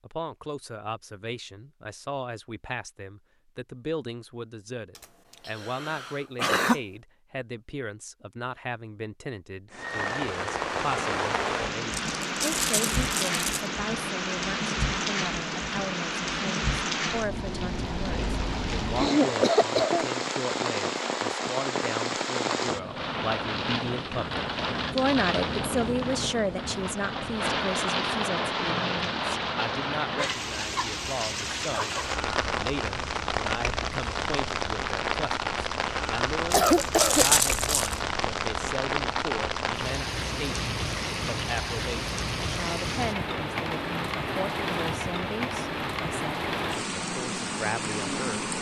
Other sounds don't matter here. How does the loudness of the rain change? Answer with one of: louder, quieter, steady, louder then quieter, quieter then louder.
steady.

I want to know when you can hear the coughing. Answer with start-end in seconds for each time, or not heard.
5.5-6.8, 18.9-20.1, 36.5-37.2.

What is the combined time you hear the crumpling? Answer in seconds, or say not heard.
3 s.